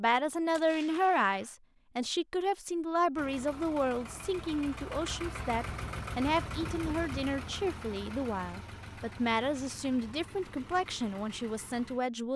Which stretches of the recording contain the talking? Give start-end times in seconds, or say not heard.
0.0-12.3.